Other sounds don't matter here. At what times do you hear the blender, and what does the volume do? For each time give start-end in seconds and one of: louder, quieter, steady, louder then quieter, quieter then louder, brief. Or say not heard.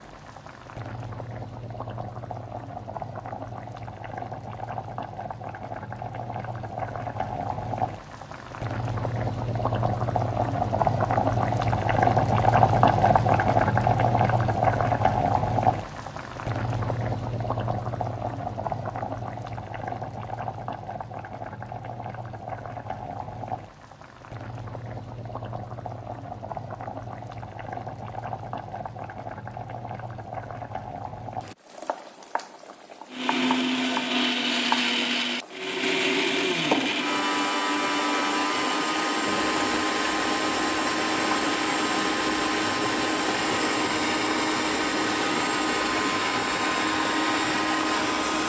33.1-48.4 steady.